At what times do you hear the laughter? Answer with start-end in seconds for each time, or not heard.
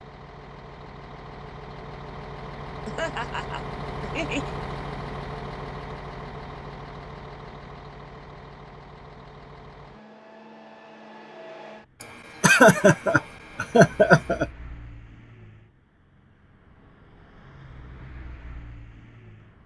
2.9-4.5, 12.0-14.4.